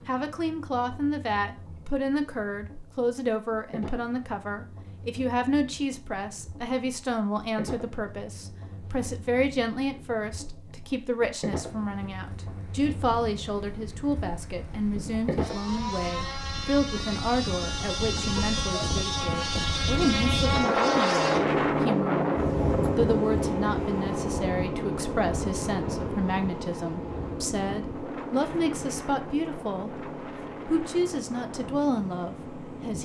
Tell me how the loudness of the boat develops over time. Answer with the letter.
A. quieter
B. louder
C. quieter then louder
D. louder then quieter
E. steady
D.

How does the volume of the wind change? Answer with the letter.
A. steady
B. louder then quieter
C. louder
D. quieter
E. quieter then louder
B.